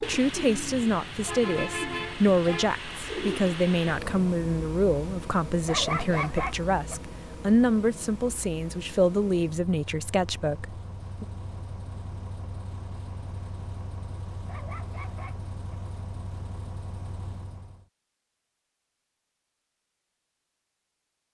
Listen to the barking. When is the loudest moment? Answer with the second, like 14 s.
6 s.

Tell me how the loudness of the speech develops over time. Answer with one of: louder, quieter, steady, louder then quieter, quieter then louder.
steady.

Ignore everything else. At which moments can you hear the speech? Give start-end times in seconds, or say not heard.
0.0-11.2.